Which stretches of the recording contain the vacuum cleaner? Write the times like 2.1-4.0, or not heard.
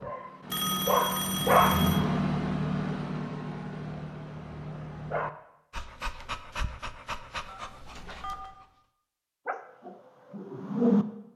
not heard.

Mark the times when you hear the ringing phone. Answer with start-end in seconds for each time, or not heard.
0.5-2.0, 7.5-8.6.